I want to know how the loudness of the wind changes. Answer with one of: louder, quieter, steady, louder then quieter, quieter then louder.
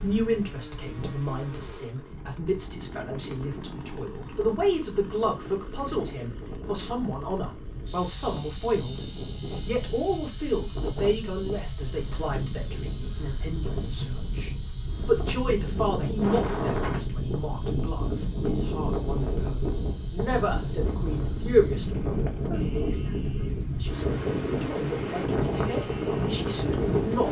louder.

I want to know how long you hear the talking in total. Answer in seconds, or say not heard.
27 s.